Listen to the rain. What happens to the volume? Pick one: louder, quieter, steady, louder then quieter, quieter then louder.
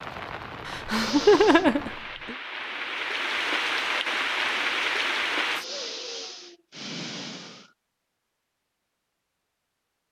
louder.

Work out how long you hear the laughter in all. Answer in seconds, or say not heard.
2 s.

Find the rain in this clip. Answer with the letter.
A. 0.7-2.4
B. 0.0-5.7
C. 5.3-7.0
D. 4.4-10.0
B.